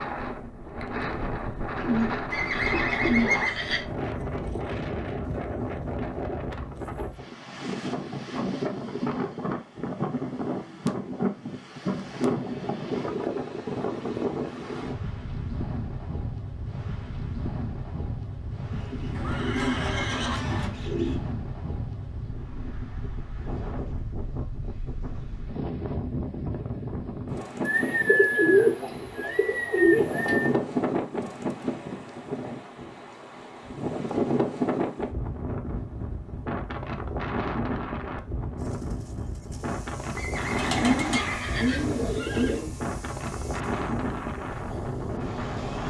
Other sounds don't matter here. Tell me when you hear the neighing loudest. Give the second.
3 s.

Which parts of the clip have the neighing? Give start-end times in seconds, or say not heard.
2.3-3.9, 19.1-20.7, 40.1-42.6.